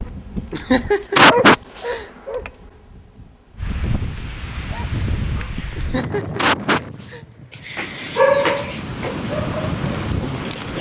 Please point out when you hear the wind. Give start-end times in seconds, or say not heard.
3.5-10.7.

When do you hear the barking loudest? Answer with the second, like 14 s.
8 s.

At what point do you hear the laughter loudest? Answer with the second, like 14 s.
1 s.